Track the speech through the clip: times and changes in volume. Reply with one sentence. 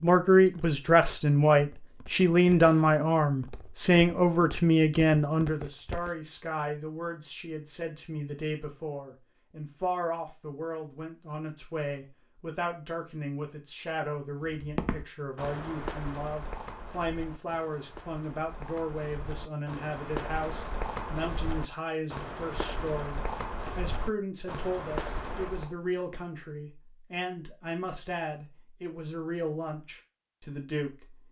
The speech can be heard from 0.0 to 31.2 s, getting quieter.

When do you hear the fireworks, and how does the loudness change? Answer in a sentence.
The fireworks can't be heard in this clip.